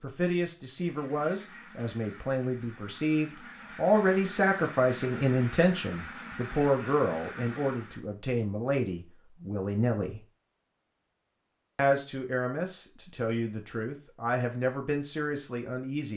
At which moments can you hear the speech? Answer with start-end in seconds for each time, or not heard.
0.0-10.2, 11.8-16.1.